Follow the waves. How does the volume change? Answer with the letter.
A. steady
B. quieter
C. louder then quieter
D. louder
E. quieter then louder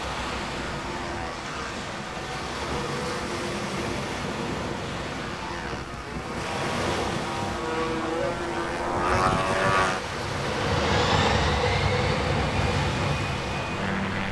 A.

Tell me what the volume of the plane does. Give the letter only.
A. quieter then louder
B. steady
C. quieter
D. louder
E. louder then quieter
D.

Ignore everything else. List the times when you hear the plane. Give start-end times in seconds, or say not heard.
0.0-14.2.